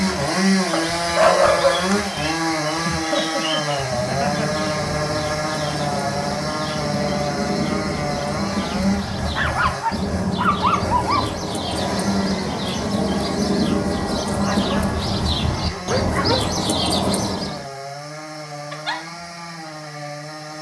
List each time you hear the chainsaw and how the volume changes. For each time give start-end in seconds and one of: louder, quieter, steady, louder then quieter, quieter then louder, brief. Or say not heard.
0.0-20.5 quieter.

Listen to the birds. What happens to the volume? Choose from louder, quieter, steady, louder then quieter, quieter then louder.
louder.